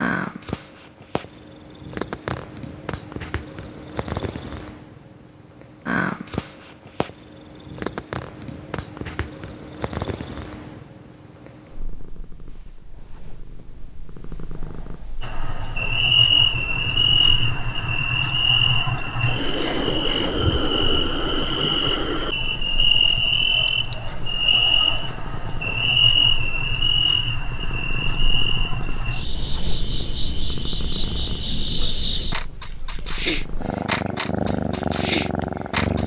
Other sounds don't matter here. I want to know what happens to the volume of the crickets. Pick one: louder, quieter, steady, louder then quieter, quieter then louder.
quieter then louder.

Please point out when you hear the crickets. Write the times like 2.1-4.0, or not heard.
15.2-36.0.